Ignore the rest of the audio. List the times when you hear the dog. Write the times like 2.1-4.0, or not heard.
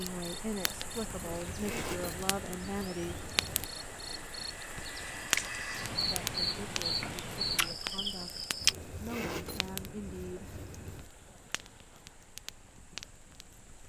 not heard.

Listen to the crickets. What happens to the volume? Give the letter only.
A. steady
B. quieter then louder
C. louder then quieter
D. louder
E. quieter
D.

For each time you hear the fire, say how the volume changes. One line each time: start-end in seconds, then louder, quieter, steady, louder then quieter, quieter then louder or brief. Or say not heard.
0.0-13.8 louder then quieter.